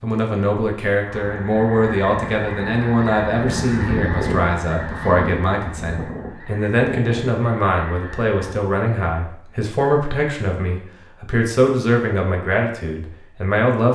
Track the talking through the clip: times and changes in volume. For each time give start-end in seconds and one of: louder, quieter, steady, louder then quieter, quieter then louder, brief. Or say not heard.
0.0-13.9 steady.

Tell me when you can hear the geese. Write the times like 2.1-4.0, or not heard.
1.0-8.6.